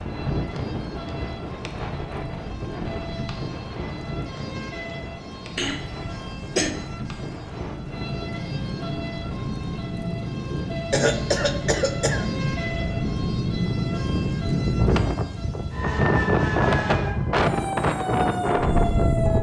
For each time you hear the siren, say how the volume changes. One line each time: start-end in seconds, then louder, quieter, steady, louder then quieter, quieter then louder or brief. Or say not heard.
0.0-19.3 louder.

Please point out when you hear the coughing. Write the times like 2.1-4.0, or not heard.
5.5-6.8, 10.9-12.2.